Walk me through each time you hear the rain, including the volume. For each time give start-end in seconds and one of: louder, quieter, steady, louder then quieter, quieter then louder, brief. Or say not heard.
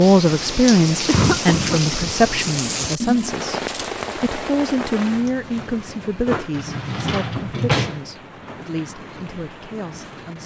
0.0-10.4 quieter.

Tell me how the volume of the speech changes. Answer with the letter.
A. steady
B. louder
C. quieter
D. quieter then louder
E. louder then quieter
C.